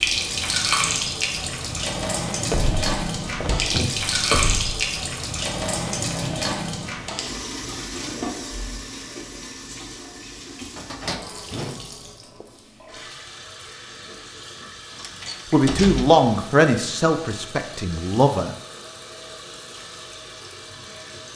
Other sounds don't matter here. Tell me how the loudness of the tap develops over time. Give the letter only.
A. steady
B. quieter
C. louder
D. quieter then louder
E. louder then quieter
B.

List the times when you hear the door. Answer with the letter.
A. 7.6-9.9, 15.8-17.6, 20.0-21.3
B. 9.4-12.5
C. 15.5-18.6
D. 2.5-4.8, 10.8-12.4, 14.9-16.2
D.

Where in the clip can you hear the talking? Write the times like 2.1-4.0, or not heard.
15.5-18.6.